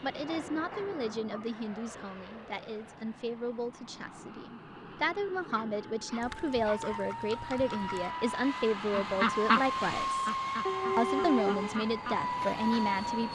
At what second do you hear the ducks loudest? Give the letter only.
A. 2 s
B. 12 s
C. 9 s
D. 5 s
C.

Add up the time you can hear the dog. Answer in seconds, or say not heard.
4 s.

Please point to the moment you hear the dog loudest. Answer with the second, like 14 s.
11 s.